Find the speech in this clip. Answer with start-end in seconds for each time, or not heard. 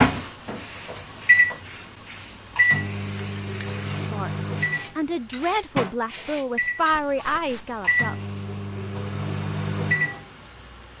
4.1-8.2.